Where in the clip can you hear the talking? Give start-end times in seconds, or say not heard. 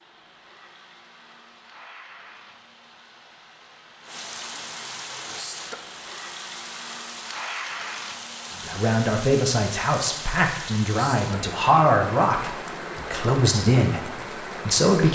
8.7-15.1.